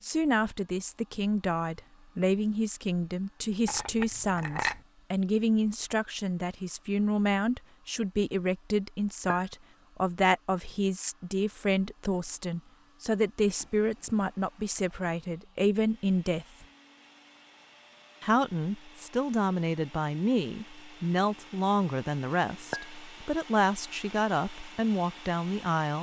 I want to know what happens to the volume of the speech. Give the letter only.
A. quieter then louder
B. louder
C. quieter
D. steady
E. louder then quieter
D.